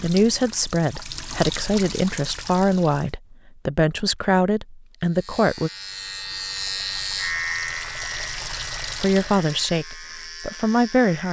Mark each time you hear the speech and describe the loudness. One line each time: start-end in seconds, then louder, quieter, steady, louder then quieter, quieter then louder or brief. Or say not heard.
0.0-5.7 steady
9.0-11.2 brief.